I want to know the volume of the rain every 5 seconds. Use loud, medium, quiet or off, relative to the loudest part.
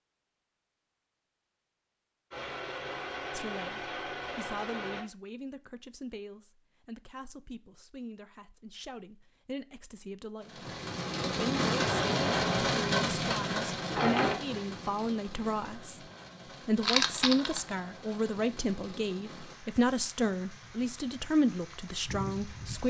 off, off, loud, quiet, quiet.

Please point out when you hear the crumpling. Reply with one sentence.
You can hear the crumpling from 16.8 to 17.6 s.